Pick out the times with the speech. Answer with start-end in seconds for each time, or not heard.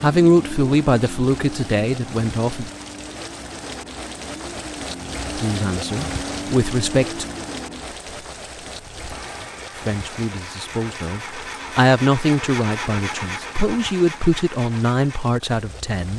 0.0-2.7, 5.3-7.2, 9.8-16.1.